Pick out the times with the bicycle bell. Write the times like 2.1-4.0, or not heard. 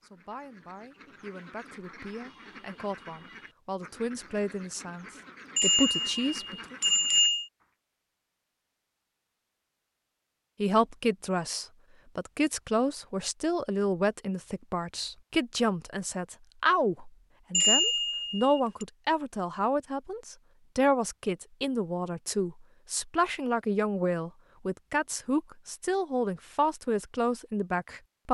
5.5-7.5, 17.5-18.9.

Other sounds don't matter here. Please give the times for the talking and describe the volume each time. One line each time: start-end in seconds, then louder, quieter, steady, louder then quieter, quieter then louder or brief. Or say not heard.
0.0-6.8 louder
10.6-28.2 steady.